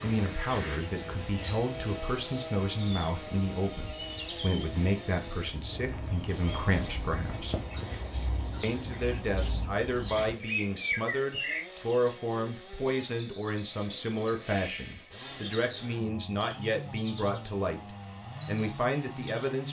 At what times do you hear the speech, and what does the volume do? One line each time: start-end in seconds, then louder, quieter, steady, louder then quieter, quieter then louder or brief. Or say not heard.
0.0-7.6 steady
8.6-19.6 steady.